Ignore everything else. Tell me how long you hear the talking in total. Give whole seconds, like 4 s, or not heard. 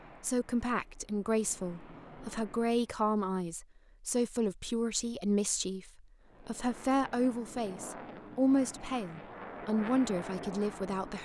11 s.